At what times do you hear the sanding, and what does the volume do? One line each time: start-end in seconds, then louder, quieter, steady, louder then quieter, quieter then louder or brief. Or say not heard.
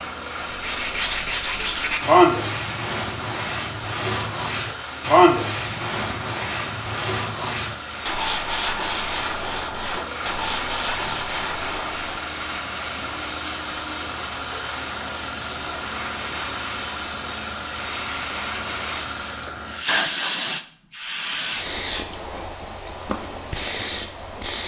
0.4-12.2 quieter.